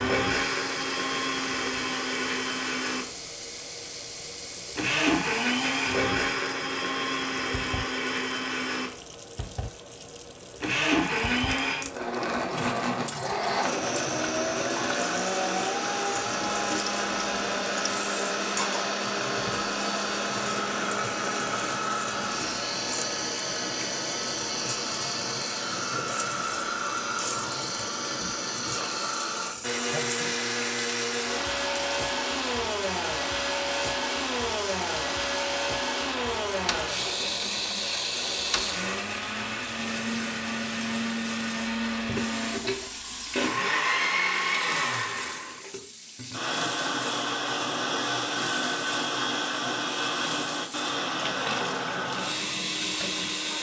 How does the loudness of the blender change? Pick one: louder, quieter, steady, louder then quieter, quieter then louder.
steady.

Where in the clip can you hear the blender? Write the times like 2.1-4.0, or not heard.
0.0-53.5.